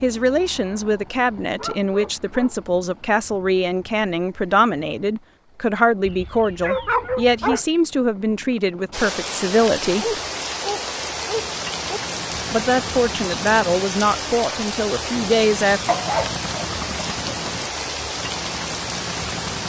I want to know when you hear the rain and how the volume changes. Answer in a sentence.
You can hear the rain from 8.9 to 19.6 s, at a steady volume.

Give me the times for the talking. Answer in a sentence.
You can hear the talking from 0.0 to 10.2 s and from 12.5 to 15.8 s.